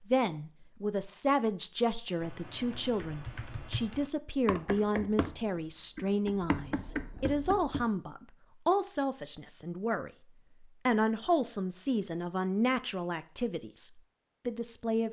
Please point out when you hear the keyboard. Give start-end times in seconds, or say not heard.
2.2-7.8.